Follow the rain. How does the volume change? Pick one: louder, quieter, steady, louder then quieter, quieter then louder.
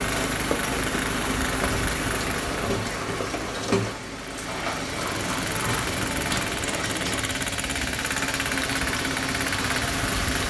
steady.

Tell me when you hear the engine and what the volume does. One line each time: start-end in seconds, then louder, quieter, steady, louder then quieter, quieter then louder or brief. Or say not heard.
0.0-10.4 quieter then louder.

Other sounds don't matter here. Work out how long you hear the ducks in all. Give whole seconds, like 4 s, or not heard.
not heard.